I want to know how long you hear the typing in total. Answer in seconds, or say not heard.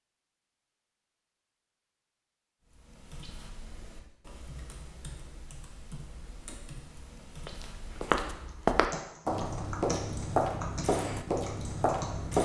10 s.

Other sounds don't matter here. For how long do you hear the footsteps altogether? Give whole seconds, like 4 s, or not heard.
5 s.